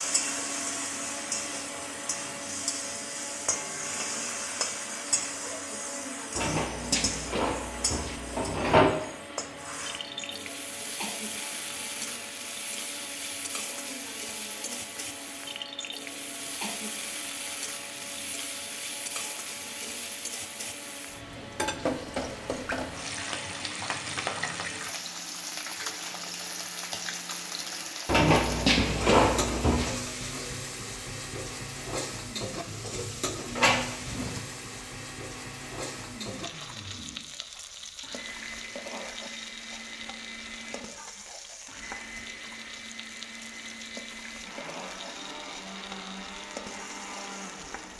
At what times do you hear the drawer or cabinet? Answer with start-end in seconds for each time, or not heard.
6.3-8.9, 28.1-29.9, 33.5-34.4.